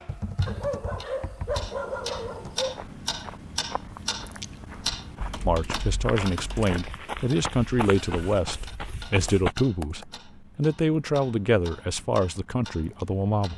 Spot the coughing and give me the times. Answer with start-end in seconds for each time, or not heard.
not heard.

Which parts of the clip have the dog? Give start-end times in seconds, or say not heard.
0.5-2.8.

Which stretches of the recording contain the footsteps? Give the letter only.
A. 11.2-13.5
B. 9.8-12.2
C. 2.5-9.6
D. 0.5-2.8
C.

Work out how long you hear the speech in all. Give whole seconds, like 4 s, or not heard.
8 s.